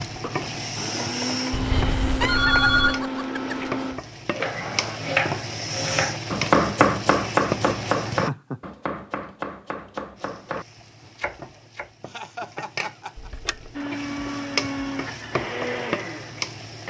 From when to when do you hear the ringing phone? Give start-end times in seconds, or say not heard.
1.5-3.0, 13.2-13.7.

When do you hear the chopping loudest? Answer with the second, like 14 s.
7 s.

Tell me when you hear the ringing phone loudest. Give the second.
3 s.